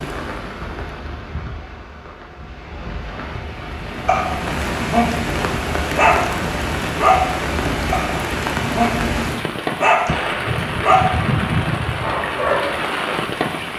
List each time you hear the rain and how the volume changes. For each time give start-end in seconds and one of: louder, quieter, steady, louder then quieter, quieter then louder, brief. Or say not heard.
0.0-13.7 louder.